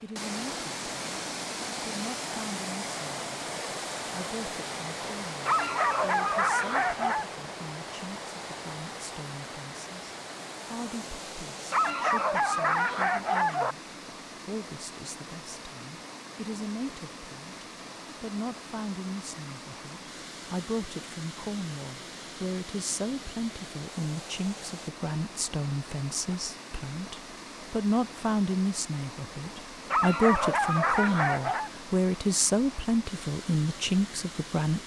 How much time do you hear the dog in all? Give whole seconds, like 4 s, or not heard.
6 s.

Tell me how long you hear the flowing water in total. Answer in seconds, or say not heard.
35 s.